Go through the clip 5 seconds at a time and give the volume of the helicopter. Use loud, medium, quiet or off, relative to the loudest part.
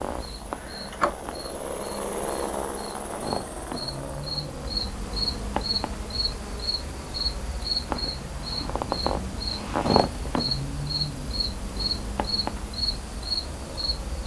loud, medium, medium.